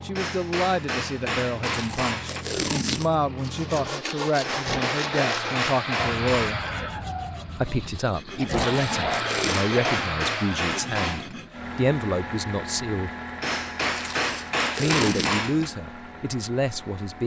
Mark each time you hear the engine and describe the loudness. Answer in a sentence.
You can hear the engine from 0.0 to 17.2 s, getting louder then quieter.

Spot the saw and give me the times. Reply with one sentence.
You can hear the saw from 3.4 to 11.6 s.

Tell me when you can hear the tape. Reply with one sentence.
The tape can be heard from 1.6 to 3.2 s, from 8.4 to 9.7 s and from 13.9 to 15.4 s.